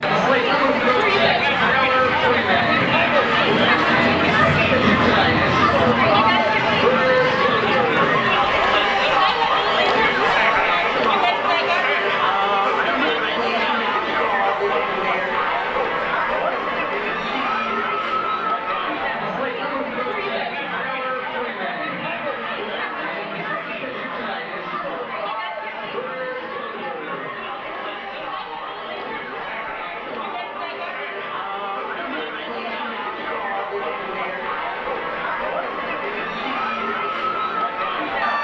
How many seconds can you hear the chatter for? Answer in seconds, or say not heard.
38 s.